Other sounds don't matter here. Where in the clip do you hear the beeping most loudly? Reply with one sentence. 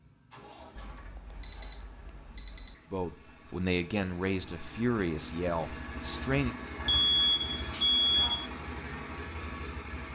The loudest moment of the beeping is at 8 seconds.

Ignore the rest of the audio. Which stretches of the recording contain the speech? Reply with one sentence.
The speech can be heard from 2.9 to 6.5 s.